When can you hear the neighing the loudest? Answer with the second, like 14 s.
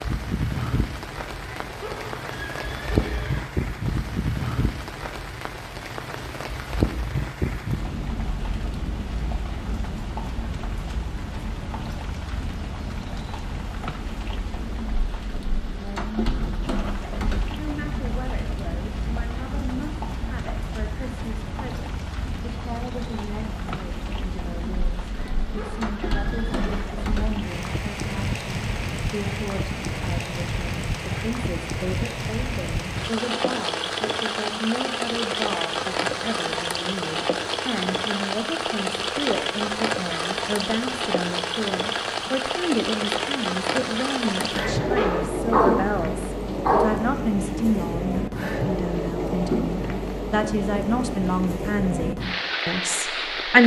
45 s.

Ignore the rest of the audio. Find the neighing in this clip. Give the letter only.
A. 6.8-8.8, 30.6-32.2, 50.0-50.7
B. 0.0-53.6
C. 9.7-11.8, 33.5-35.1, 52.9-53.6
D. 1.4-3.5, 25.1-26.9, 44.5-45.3
D.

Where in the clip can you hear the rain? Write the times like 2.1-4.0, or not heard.
0.0-53.6.